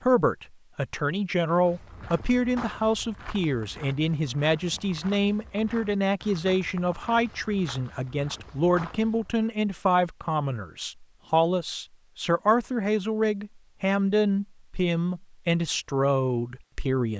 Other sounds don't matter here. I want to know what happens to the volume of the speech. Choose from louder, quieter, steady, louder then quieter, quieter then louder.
steady.